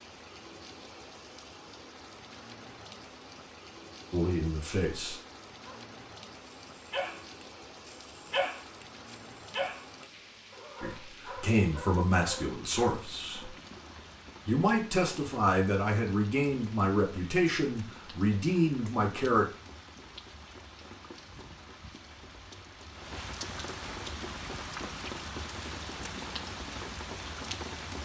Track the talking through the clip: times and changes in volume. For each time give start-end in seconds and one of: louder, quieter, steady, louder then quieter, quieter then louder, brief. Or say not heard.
4.1-5.2 brief
10.8-13.5 brief
14.4-19.5 steady.